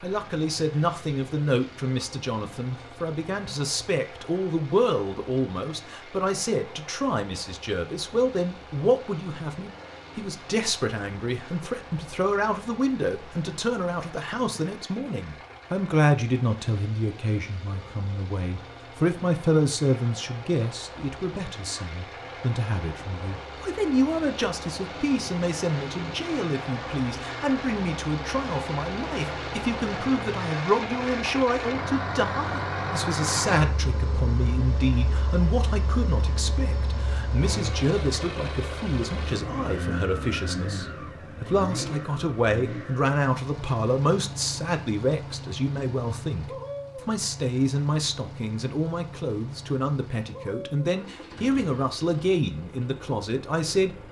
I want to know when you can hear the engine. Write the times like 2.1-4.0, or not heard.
0.0-54.0.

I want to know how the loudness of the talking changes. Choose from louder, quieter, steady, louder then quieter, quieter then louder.
steady.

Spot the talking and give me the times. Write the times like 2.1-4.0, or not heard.
0.0-54.0.